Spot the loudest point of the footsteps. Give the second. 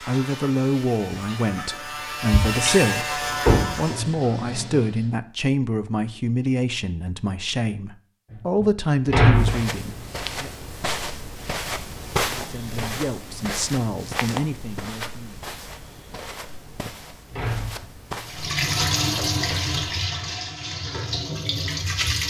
12 s.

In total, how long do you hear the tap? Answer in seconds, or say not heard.
9 s.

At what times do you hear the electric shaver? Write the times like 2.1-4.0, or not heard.
0.0-4.0.